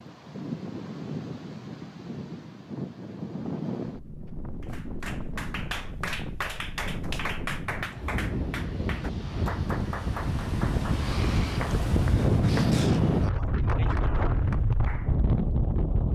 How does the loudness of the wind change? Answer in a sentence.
The loudness of the wind goes up.